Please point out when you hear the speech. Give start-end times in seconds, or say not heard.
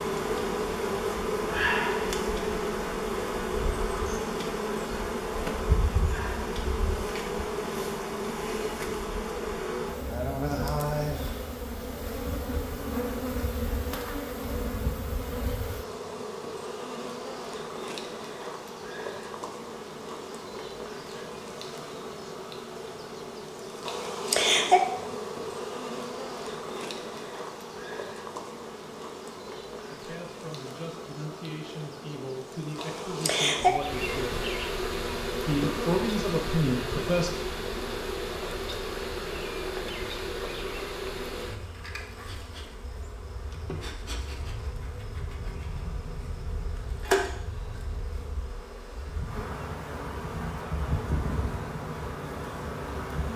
29.9-34.5, 35.5-37.3.